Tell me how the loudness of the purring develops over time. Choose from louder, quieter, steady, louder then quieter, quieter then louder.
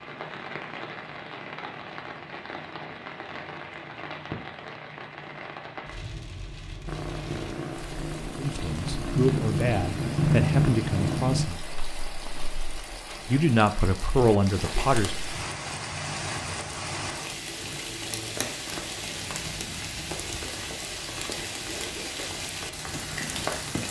louder then quieter.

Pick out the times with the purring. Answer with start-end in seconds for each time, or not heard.
6.8-12.5.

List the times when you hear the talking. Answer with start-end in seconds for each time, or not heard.
8.3-11.6, 13.2-15.2.